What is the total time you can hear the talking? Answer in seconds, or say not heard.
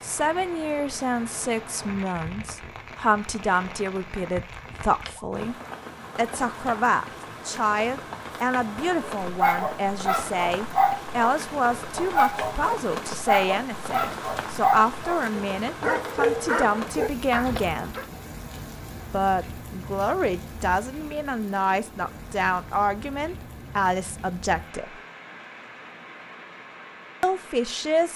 24 s.